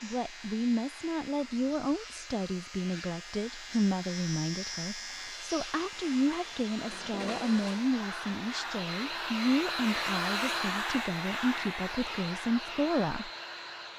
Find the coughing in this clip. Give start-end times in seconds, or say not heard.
not heard.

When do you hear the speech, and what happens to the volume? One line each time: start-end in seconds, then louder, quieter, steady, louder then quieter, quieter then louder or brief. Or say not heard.
0.0-13.3 steady.